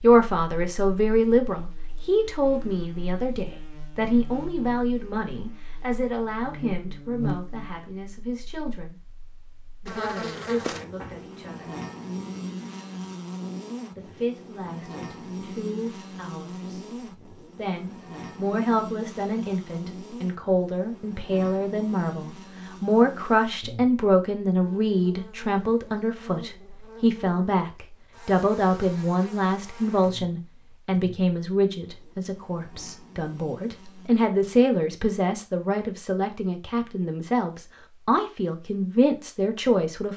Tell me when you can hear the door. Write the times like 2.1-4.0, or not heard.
10.9-11.3.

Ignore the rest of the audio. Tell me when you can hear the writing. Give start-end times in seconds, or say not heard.
not heard.